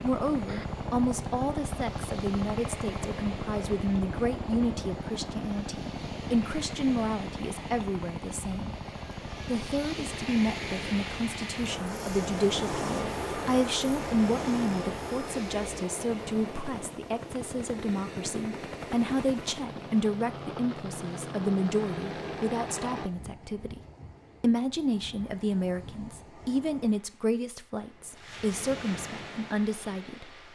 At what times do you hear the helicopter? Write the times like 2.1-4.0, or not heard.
0.0-23.1.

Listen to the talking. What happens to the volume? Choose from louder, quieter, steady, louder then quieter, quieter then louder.
steady.